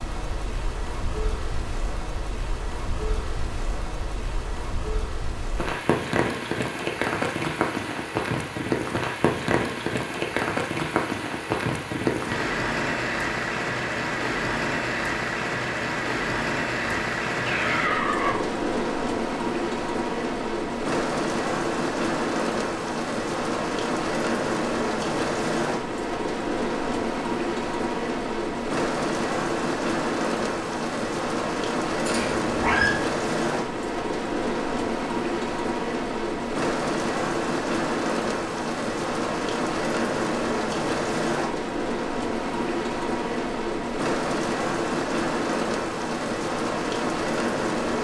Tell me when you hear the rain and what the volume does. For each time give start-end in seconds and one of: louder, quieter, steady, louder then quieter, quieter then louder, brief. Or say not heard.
0.0-47.9 steady.